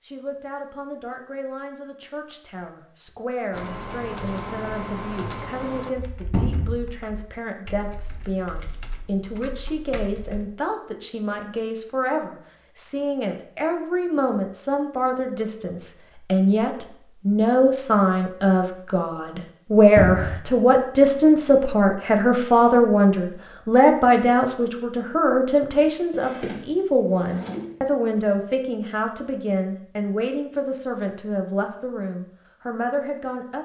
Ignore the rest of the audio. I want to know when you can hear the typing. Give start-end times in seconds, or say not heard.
3.5-10.4.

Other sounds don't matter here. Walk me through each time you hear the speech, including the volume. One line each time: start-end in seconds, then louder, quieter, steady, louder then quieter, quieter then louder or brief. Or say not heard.
0.0-33.6 louder then quieter.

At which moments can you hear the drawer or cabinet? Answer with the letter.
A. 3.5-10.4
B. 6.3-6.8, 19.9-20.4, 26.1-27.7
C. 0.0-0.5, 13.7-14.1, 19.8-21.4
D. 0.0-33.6
B.